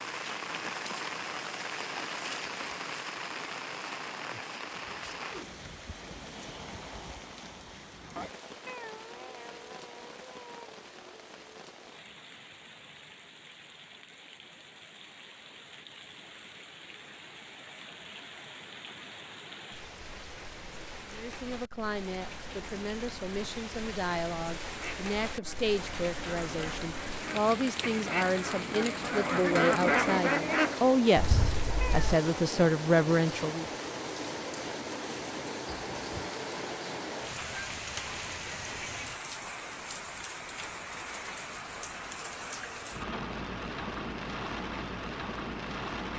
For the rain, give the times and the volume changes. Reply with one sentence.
The rain can be heard from 0.0 to 46.1 s, getting quieter then louder.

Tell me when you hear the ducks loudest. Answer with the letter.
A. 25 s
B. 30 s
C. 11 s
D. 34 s
B.